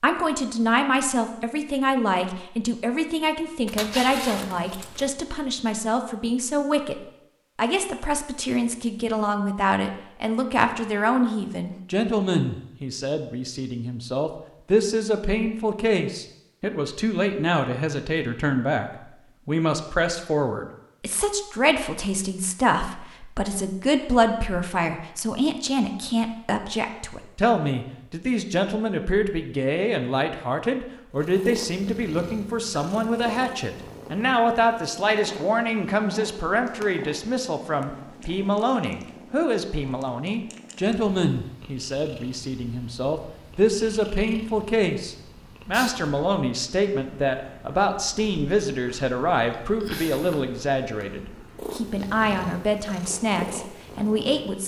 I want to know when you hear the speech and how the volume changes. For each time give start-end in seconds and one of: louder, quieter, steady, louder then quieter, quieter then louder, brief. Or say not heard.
0.0-18.9 steady
19.4-54.6 steady.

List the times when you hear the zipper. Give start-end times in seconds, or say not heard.
3.6-5.1.